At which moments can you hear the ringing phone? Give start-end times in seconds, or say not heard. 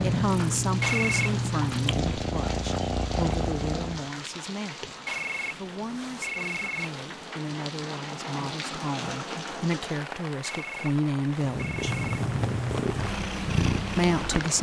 0.8-1.4, 5.0-7.0, 10.4-12.2.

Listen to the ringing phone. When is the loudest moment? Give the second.
1 s.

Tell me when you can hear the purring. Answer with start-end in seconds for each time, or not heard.
0.0-4.1, 11.4-14.5.